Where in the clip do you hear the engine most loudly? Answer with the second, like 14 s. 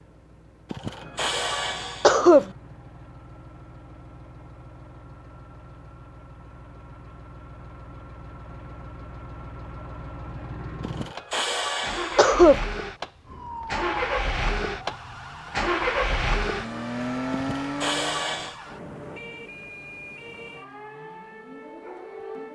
16 s.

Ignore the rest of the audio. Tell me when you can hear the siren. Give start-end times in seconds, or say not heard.
13.2-22.4.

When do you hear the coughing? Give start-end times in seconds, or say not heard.
0.7-2.5, 10.8-12.6, 17.3-18.6.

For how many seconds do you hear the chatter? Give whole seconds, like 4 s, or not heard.
not heard.